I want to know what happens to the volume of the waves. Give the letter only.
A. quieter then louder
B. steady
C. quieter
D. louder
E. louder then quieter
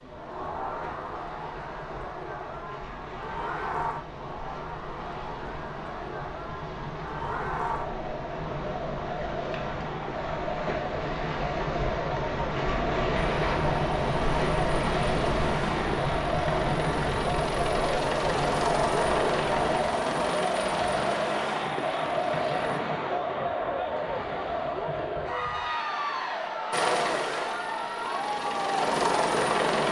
E.